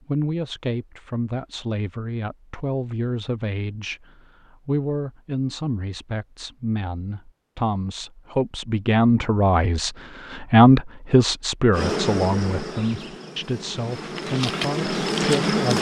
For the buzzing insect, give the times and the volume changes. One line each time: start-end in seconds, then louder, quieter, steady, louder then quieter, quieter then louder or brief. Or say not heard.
11.7-15.7 quieter then louder.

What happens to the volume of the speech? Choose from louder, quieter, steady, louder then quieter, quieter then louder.
louder then quieter.